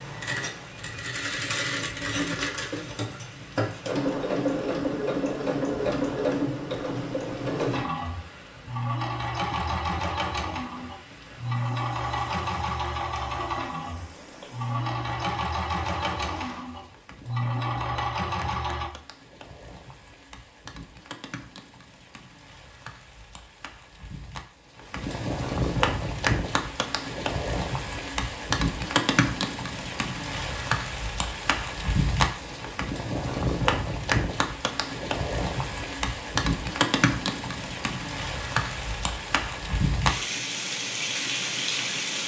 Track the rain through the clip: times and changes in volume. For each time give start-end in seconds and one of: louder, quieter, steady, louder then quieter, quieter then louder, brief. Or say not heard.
0.0-42.2 louder.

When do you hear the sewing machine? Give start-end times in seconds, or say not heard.
0.0-18.9.